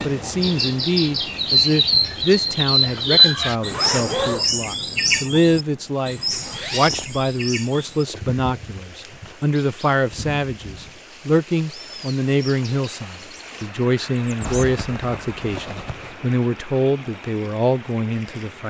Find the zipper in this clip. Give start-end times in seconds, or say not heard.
3.0-4.5, 6.3-7.2, 14.4-16.2.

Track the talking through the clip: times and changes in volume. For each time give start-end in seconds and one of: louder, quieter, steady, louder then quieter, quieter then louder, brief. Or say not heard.
0.0-18.6 steady.